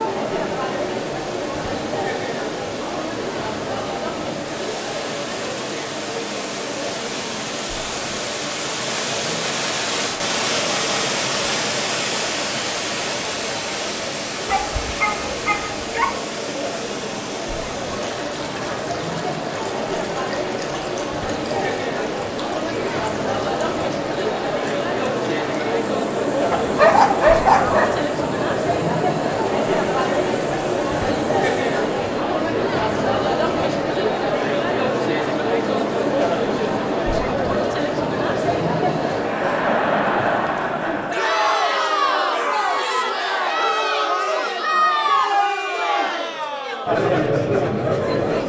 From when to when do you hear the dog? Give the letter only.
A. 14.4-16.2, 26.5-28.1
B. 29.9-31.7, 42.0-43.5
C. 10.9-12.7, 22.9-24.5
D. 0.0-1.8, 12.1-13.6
A.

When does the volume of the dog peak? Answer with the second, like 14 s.
27 s.